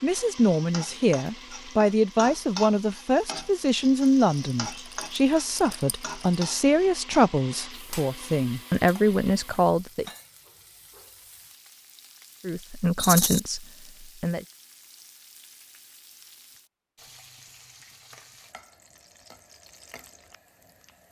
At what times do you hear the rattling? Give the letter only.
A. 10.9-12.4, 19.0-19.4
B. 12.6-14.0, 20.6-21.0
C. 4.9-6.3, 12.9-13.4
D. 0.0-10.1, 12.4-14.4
C.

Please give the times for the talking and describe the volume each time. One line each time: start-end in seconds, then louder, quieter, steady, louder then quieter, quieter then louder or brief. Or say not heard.
0.0-10.1 steady
12.4-14.4 brief.